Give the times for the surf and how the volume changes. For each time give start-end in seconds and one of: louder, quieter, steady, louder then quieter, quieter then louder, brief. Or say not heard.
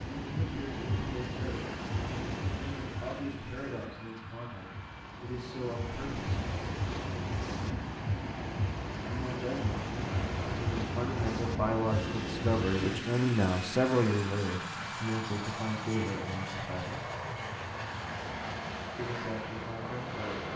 0.0-13.1 quieter then louder.